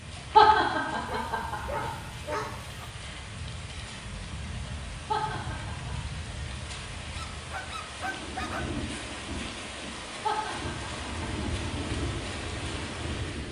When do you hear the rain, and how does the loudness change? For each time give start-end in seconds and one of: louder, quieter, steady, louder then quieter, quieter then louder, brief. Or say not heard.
0.0-13.4 louder.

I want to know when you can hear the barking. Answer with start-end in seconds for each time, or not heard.
1.1-2.9, 7.2-8.8.